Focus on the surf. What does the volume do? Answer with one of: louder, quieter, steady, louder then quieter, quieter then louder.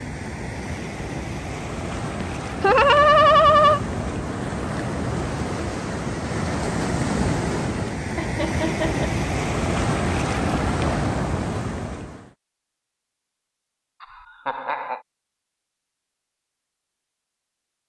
louder.